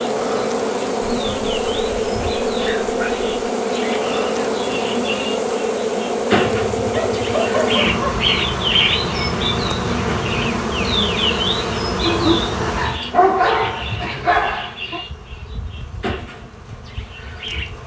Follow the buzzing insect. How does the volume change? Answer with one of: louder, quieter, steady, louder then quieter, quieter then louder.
quieter.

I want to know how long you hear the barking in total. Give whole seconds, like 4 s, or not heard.
7 s.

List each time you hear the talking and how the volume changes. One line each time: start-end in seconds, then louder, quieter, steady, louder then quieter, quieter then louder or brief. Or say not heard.
not heard.